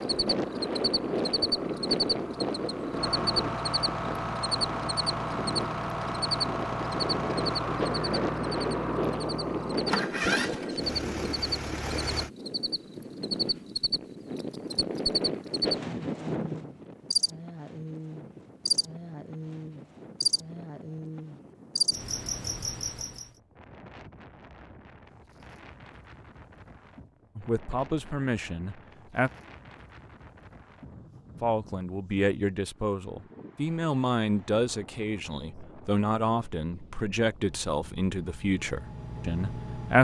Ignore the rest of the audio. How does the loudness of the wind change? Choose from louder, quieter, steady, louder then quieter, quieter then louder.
quieter.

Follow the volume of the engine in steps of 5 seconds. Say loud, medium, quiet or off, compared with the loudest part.
loud, loud, loud, off, off, off, off, medium.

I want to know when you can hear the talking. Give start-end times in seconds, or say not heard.
27.4-29.3, 31.4-40.0.